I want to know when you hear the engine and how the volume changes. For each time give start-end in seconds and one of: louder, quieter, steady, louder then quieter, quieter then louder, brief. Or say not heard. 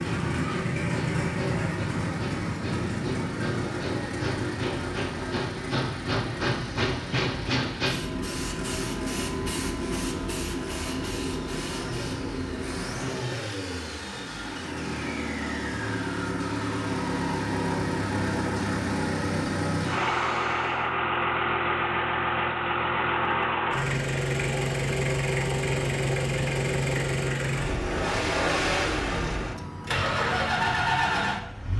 0.0-31.7 quieter then louder.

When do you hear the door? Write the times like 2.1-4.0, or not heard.
not heard.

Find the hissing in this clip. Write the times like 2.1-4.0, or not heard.
0.0-20.9.